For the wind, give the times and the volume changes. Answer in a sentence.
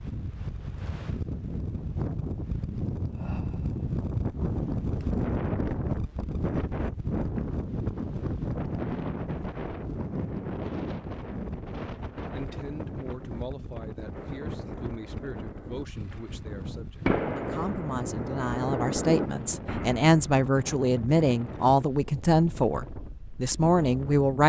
The wind can be heard from 0.0 to 24.4 s, getting quieter.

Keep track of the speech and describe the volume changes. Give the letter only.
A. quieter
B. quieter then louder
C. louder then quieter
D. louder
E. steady
D.